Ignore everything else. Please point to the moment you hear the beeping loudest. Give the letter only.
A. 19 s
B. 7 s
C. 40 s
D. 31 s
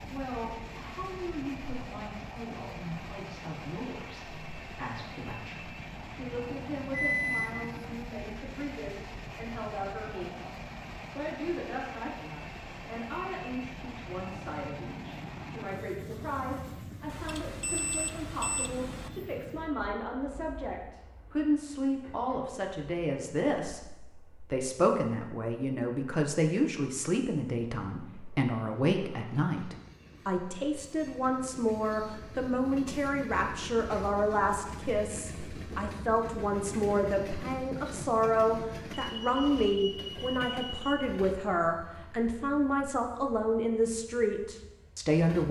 B.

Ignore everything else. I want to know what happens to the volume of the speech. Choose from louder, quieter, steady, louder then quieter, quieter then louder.
louder.